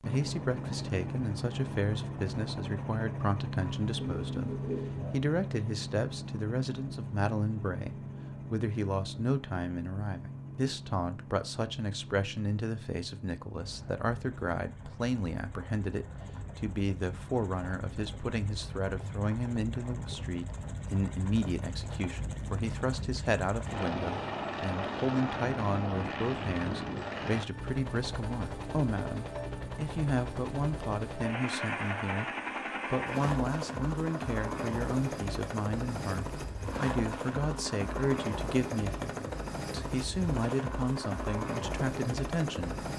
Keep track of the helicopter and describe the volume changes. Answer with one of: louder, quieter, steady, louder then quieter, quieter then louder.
quieter then louder.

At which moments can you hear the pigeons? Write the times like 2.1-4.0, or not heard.
3.6-5.3.